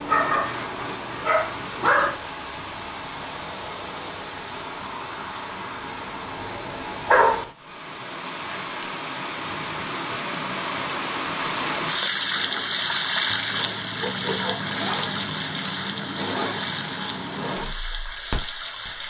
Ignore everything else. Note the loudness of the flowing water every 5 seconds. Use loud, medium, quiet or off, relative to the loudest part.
medium, medium, loud, medium.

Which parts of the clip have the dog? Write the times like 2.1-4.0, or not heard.
0.1-2.1, 6.7-7.5, 13.3-15.2.